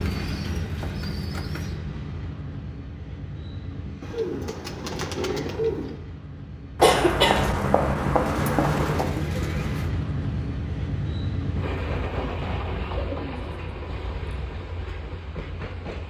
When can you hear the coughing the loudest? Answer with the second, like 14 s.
7 s.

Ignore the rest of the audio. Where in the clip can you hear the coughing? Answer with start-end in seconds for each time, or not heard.
6.8-9.1.